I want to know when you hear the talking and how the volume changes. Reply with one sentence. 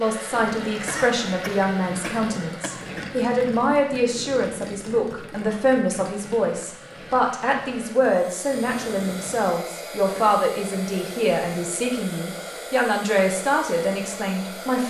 You can hear the talking from 0.0 to 14.8 s, at a steady volume.